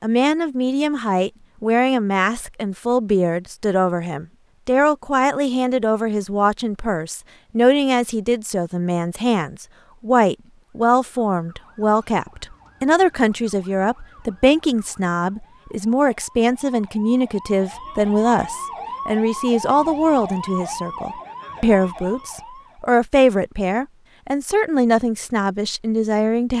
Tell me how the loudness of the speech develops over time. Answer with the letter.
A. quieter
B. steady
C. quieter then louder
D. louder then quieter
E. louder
B.